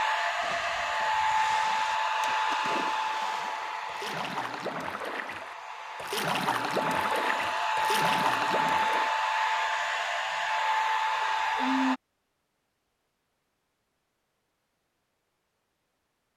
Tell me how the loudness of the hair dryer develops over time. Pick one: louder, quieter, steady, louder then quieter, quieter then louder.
quieter then louder.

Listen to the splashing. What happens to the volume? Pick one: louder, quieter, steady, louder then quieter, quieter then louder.
louder.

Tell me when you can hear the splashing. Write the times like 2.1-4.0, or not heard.
0.3-9.1.